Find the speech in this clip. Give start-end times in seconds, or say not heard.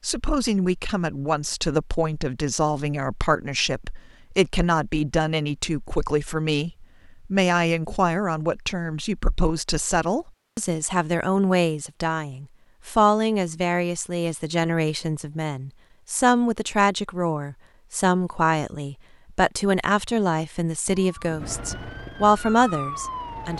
0.0-23.5.